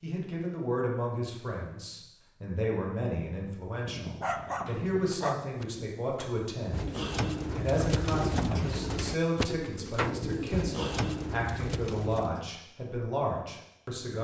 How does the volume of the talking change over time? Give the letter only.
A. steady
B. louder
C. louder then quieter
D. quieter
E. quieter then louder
A.